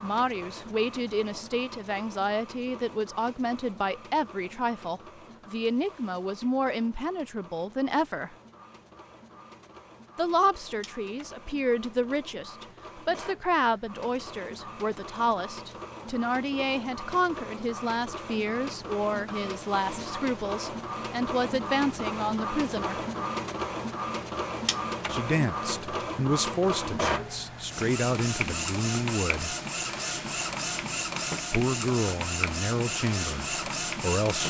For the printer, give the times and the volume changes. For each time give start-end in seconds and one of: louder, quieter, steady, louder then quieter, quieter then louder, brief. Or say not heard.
0.0-34.4 louder.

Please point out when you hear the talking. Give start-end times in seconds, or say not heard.
0.0-8.3, 10.2-23.0, 25.1-29.6, 31.5-34.4.